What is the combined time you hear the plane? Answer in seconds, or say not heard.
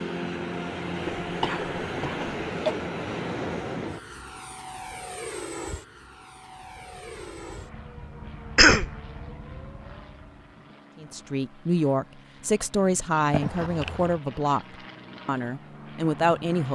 17 s.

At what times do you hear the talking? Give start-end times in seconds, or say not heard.
11.0-16.7.